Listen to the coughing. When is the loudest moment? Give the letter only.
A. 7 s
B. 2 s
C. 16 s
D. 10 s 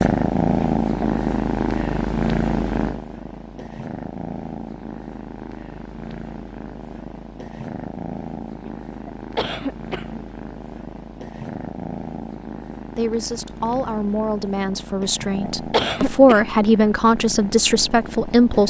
C.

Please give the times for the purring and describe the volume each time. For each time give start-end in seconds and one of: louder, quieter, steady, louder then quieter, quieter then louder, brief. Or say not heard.
0.0-18.6 quieter.